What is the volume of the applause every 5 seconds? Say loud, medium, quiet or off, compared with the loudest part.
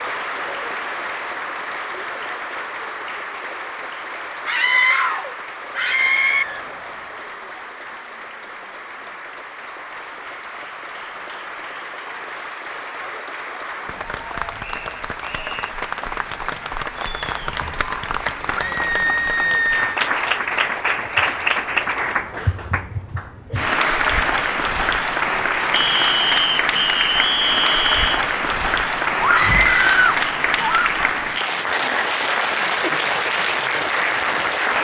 medium, quiet, medium, medium, loud, loud, loud.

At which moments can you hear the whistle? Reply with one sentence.
You can hear the whistle from 5.8 to 7.2 s, from 14.6 to 15.8 s and from 25.7 to 28.2 s.